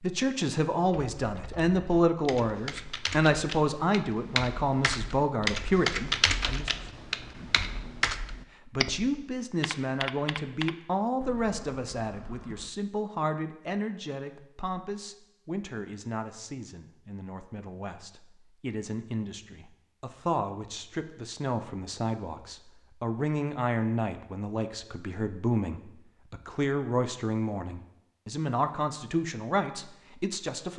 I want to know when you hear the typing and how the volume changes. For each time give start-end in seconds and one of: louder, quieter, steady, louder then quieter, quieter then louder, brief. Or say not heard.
0.9-12.7 louder then quieter.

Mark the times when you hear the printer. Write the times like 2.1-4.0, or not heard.
not heard.